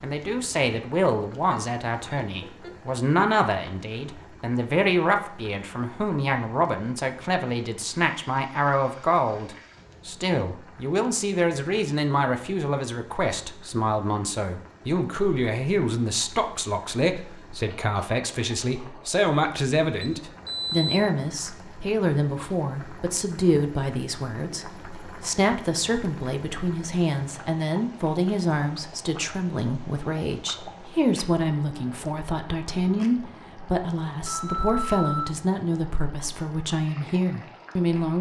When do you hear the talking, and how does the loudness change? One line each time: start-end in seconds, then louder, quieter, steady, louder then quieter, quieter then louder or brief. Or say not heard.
0.0-38.1 steady.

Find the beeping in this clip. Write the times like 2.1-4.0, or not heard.
1.3-3.0, 20.1-20.9, 34.2-35.4.